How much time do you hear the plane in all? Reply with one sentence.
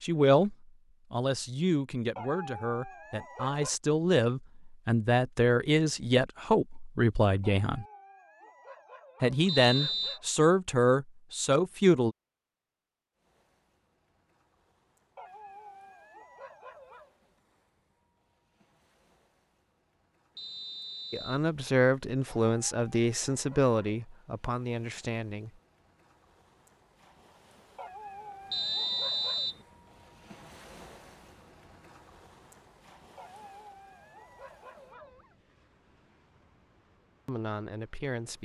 You can't hear the plane here.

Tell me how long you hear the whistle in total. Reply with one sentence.
You can hear the whistle for 3 seconds altogether.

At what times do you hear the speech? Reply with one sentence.
The speech can be heard from 0.0 to 7.8 s, from 9.2 to 12.2 s, from 21.1 to 25.6 s and from 37.2 to 38.3 s.